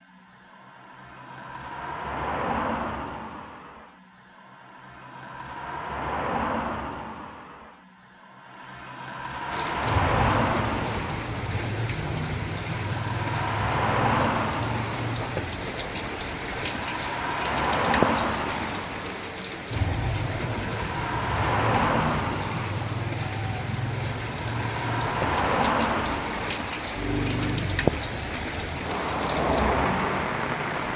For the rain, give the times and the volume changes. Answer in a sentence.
The rain can be heard from 9.4 to 30.9 s, at a steady volume.